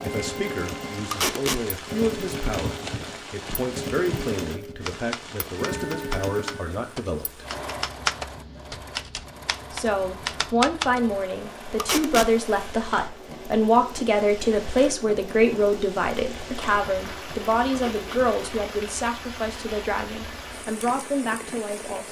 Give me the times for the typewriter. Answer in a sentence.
You can hear the typewriter from 2.5 to 11.0 s.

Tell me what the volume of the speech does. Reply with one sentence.
The volume of the speech goes up, then down.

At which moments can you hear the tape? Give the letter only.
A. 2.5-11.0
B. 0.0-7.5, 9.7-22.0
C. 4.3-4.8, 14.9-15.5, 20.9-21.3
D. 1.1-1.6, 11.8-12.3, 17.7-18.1
D.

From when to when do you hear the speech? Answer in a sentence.
You can hear the speech from 0.0 to 7.5 s and from 9.7 to 22.0 s.